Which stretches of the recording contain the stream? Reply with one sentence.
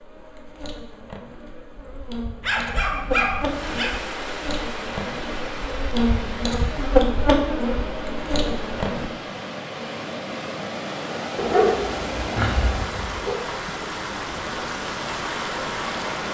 The stream can be heard from 3.4 to 16.2 s.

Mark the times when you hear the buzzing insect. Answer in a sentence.
The buzzing insect can be heard from 0.0 to 9.1 s.